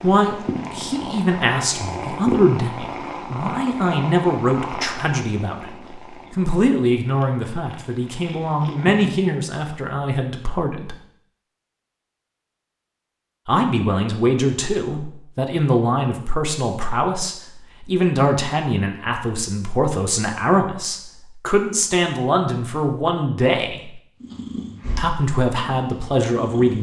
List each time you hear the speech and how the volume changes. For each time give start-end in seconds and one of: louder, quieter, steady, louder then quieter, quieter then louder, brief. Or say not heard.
0.0-10.9 steady
13.4-24.0 steady
24.9-26.7 brief.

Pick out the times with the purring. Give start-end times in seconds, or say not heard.
0.0-9.2, 24.2-26.7.